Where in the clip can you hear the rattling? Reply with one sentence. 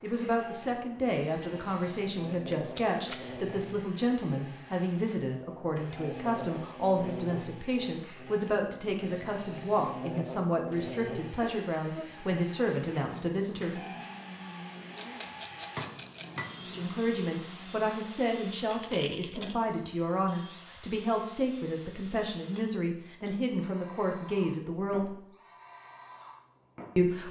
You can hear the rattling from 2.3 to 3.2 s, from 14.9 to 16.4 s and from 18.8 to 19.6 s.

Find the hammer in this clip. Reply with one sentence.
You can hear the hammer from 14.6 to 16.6 s.